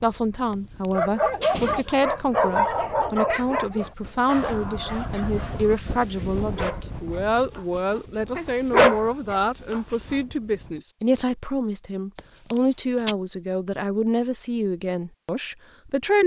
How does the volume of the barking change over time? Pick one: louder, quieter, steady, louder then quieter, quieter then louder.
quieter then louder.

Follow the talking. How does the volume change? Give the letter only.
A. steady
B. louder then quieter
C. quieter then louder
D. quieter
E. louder
A.